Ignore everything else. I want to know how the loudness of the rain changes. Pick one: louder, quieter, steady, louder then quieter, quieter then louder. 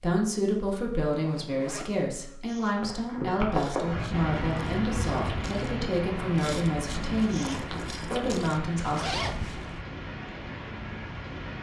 quieter.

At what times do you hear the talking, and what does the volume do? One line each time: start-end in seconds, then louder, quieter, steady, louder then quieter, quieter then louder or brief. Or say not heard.
0.0-9.1 steady.